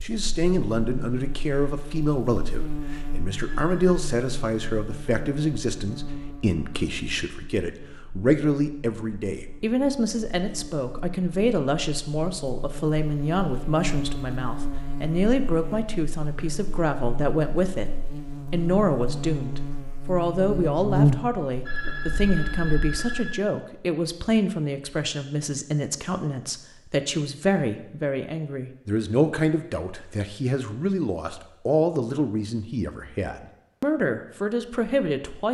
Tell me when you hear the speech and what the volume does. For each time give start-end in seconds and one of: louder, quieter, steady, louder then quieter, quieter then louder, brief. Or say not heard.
0.0-17.9 steady
18.5-35.5 steady.